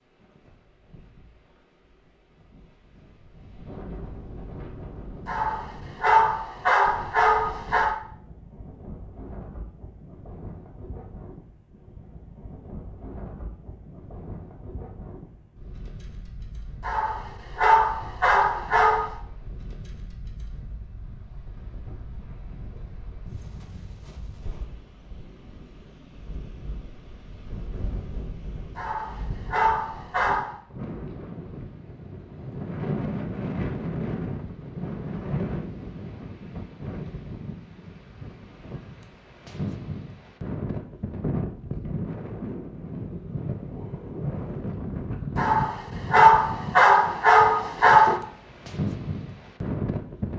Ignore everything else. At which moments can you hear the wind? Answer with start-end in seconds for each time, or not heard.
0.0-50.3.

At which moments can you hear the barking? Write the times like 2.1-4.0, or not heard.
5.2-8.0, 16.8-19.1, 28.8-30.5, 45.4-48.2.